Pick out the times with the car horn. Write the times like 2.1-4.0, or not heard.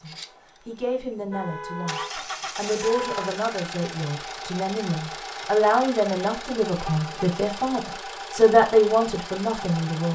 1.3-3.3, 6.8-7.4.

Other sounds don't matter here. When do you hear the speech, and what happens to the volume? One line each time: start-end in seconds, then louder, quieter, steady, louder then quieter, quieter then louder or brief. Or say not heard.
0.0-10.1 louder.